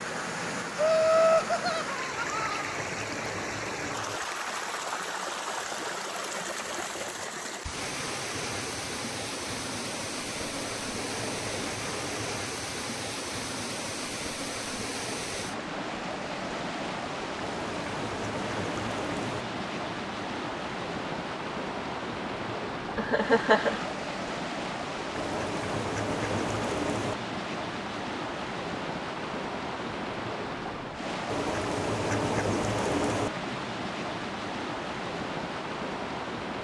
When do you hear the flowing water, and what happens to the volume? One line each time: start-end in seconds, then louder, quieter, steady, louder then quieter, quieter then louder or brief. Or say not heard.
0.0-36.6 steady.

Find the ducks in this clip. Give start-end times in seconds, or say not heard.
2.1-4.2, 10.3-12.4, 17.4-19.4, 25.1-27.1, 31.2-33.3.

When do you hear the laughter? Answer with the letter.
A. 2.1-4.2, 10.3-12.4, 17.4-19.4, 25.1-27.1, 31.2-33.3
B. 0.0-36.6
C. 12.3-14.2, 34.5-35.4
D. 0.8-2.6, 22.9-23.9
D.